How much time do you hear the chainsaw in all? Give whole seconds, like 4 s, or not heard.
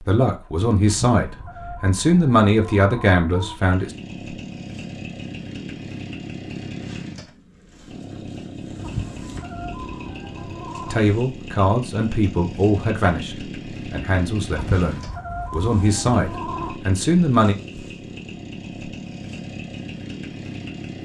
17 s.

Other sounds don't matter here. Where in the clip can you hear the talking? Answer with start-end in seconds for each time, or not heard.
0.0-4.0, 10.9-17.6.